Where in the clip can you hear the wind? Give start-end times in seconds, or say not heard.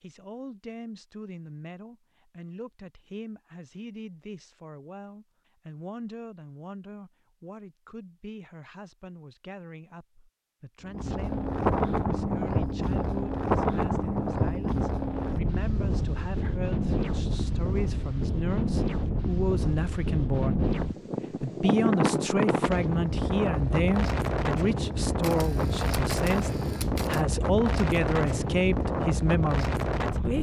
10.8-30.3.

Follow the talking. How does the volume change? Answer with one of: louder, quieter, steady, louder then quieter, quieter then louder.
louder.